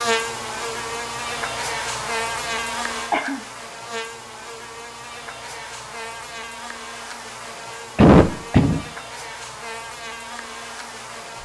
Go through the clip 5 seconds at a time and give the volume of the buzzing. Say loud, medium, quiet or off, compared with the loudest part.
loud, medium, medium.